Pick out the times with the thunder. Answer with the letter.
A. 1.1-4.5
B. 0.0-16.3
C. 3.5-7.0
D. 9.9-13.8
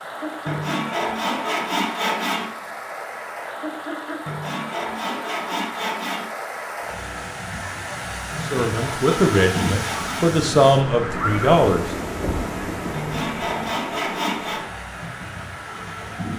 D.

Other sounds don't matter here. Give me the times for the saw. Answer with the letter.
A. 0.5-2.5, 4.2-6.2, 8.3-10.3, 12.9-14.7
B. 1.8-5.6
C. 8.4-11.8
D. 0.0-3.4
A.